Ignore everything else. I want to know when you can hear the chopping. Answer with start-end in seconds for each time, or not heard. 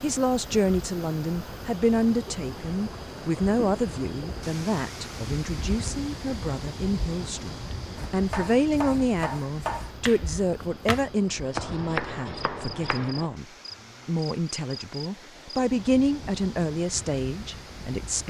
7.5-13.3.